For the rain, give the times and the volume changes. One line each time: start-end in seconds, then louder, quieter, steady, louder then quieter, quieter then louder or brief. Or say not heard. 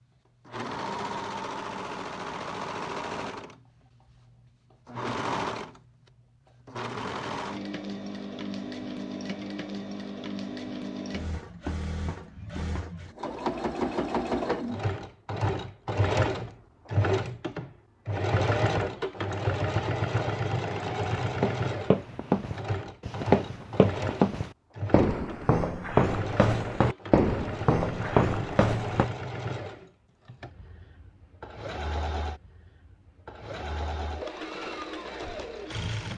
not heard.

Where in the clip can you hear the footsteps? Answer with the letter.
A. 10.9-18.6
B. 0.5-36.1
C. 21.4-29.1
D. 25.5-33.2
C.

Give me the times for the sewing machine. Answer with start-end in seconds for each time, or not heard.
0.5-36.1.